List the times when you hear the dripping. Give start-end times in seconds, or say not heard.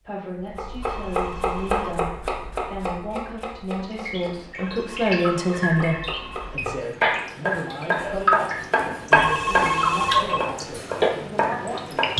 3.9-12.1.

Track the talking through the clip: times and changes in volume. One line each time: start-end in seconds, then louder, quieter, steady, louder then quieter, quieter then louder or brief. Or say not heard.
0.0-12.1 louder then quieter.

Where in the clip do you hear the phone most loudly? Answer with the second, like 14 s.
10 s.